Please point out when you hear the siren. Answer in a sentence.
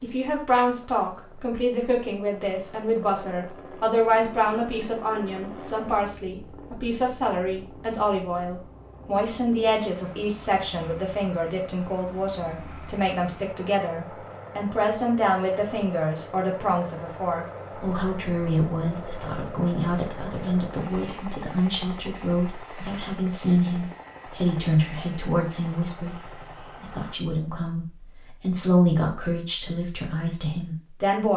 The siren can't be heard in this clip.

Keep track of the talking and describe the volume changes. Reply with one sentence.
The volume of the talking stays about the same.